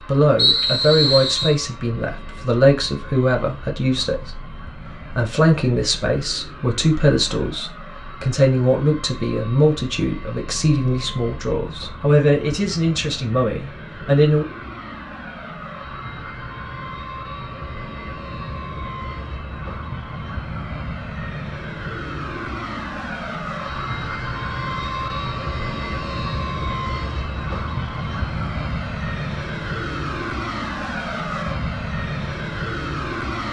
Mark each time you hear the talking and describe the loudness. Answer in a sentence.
You can hear the talking from 0.1 to 14.4 s, at a steady volume.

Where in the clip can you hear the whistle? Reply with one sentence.
The whistle can be heard from 0.3 to 1.6 s.